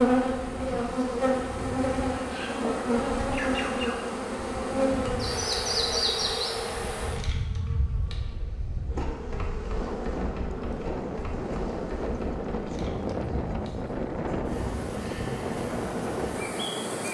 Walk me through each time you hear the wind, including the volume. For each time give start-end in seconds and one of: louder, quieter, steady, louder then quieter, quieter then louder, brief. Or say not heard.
0.0-17.0 louder.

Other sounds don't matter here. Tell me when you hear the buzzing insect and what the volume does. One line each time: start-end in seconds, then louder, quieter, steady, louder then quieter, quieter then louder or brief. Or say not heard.
0.0-17.0 quieter.